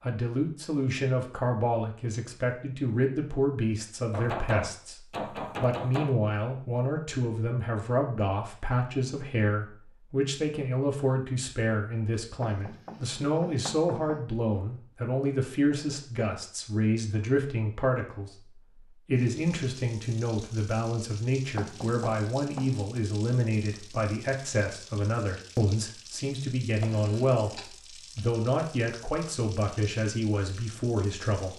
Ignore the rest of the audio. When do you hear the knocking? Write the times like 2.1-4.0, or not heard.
4.1-6.2, 12.4-14.2, 21.6-22.7.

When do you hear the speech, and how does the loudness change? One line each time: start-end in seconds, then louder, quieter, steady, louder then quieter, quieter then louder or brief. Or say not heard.
0.0-31.5 steady.